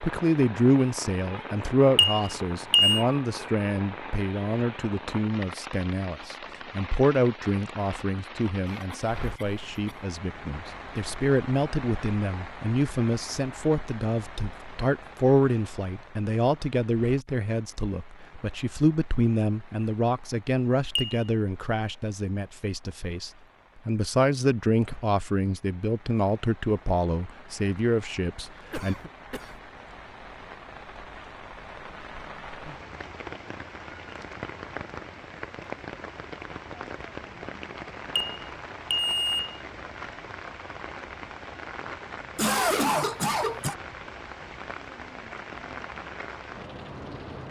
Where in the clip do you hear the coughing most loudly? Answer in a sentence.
The loudest moment of the coughing is at 43 seconds.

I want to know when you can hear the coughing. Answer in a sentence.
The coughing can be heard from 8.7 to 10.0 s, from 28.6 to 29.6 s and from 42.4 to 43.8 s.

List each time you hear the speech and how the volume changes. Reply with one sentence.
The speech can be heard from 0.0 to 28.9 s, at a steady volume.